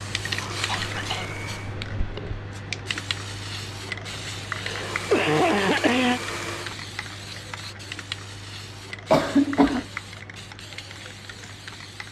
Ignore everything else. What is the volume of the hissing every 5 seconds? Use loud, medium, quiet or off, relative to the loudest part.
loud, loud, medium.